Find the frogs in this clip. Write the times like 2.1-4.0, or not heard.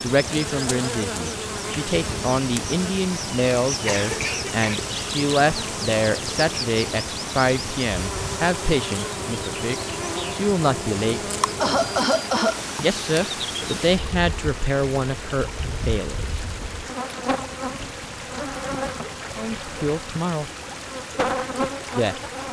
not heard.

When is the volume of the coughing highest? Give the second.
12 s.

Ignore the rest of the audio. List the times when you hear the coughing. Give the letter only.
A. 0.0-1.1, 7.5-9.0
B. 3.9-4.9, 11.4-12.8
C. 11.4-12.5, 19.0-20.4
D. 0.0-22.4
B.